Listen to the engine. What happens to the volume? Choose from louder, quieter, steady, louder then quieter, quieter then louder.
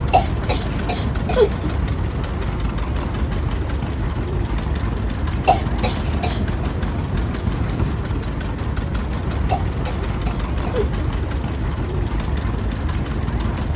steady.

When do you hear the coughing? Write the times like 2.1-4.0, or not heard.
0.1-1.7, 5.5-6.7, 9.4-11.1.